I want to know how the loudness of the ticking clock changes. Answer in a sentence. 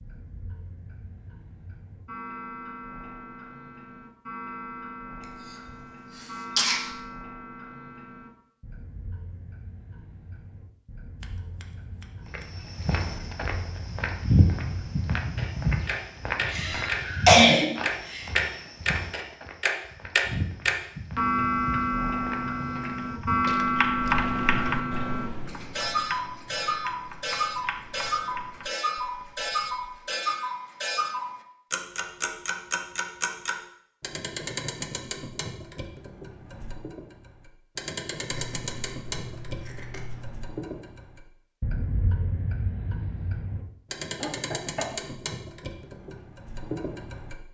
The loudness of the ticking clock goes up, then down.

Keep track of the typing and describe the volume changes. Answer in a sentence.
The loudness of the typing goes down.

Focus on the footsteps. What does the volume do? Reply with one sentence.
The loudness of the footsteps goes down.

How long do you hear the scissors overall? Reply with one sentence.
The scissors can be heard for 3 seconds in total.